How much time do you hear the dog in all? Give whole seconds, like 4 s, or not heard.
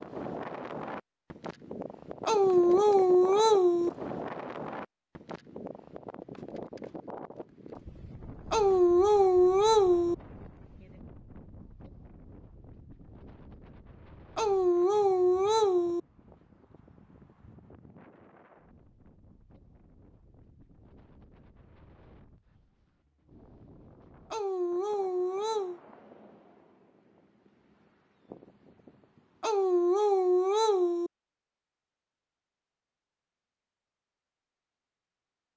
8 s.